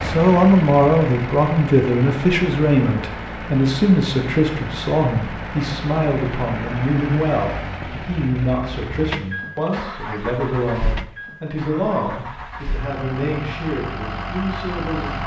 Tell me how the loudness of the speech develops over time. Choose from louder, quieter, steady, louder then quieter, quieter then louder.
quieter.